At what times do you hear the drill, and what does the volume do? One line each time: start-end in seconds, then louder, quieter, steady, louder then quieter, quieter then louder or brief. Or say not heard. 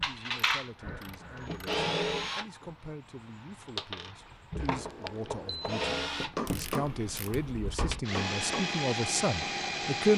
0.0-10.1 quieter then louder.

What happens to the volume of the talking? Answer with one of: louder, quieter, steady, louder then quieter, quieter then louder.
louder.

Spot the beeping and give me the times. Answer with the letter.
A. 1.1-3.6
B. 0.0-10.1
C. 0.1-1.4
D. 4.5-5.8
D.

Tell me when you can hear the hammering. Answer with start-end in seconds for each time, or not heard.
6.1-8.7.